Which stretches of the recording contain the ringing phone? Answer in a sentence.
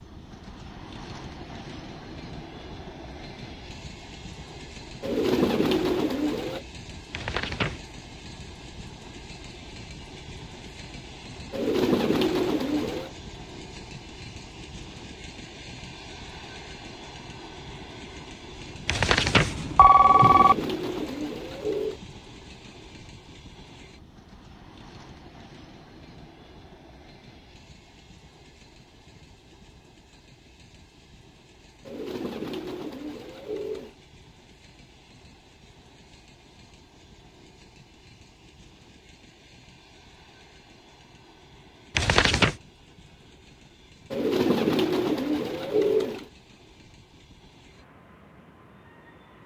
You can hear the ringing phone from 7.1 to 7.8 s, from 18.9 to 20.6 s and from 42.0 to 42.5 s.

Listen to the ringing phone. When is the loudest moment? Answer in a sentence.
The volume of the ringing phone peaks at 20 seconds.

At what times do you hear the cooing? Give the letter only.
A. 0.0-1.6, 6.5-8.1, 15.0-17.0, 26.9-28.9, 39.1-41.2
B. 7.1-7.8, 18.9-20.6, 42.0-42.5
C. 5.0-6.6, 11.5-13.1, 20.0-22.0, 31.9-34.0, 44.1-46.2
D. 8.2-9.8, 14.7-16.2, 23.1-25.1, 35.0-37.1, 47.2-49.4
C.